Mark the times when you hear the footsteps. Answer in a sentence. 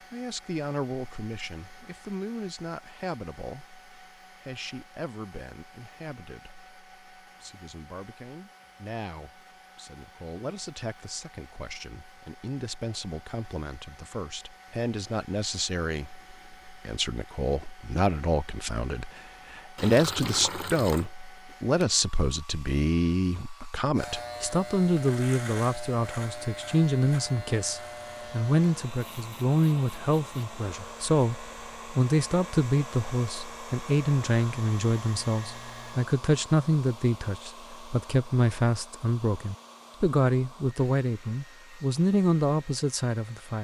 The footsteps can't be heard in this clip.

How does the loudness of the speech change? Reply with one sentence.
The volume of the speech goes up.